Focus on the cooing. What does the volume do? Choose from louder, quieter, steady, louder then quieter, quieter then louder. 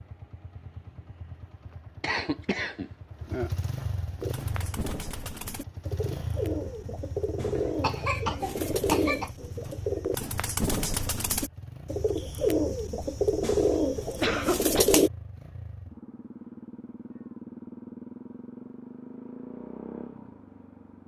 louder.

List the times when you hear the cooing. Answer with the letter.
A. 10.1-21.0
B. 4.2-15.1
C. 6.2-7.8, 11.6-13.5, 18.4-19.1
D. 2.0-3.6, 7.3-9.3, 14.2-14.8
B.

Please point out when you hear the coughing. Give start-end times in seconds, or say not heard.
2.0-3.6, 7.3-9.3, 14.2-14.8.